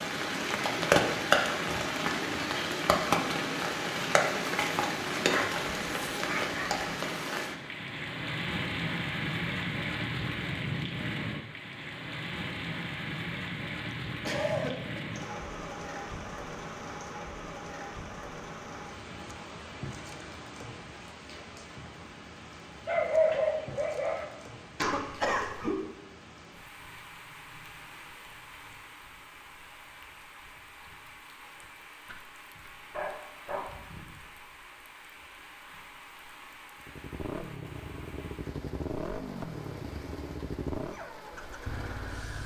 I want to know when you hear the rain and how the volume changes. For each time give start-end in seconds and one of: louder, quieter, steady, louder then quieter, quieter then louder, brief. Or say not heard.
0.0-42.4 quieter.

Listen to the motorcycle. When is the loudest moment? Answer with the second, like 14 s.
39 s.